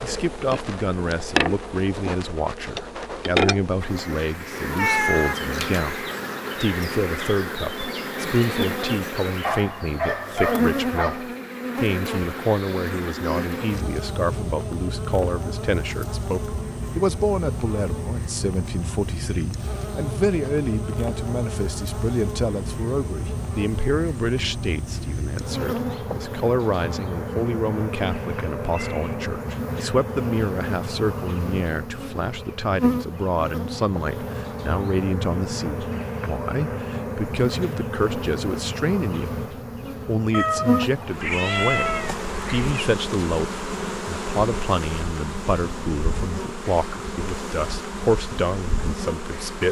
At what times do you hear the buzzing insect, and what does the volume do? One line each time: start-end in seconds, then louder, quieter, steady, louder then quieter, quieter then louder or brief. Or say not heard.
0.0-49.6 steady.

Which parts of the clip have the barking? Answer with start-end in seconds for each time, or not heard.
9.4-11.2.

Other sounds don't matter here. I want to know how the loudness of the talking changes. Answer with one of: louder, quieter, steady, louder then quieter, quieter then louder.
steady.